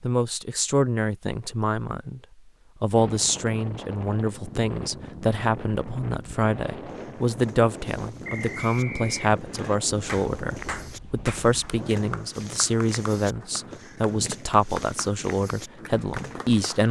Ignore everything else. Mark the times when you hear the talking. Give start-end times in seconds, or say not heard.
0.0-2.2, 2.8-16.8.